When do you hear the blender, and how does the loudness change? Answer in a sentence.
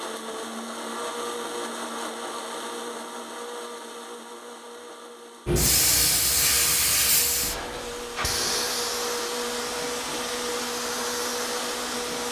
You can hear the blender from 0.0 to 12.2 s, getting quieter then louder.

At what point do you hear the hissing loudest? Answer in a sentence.
The volume of the hissing peaks at 6 seconds.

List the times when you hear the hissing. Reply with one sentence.
The hissing can be heard from 5.5 to 12.2 s.